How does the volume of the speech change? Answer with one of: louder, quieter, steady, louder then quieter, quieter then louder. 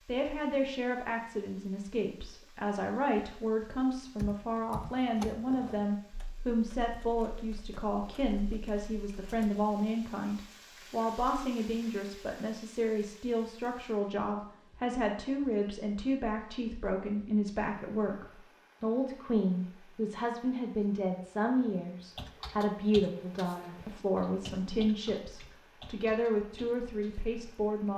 steady.